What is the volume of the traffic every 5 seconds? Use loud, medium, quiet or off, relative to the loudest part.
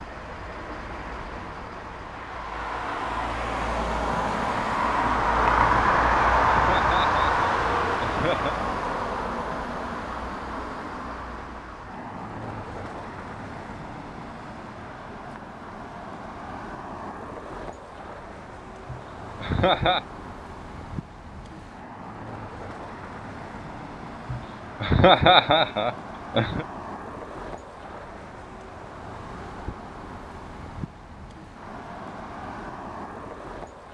medium, loud, quiet, quiet, quiet, quiet, quiet.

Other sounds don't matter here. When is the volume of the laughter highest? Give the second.
25 s.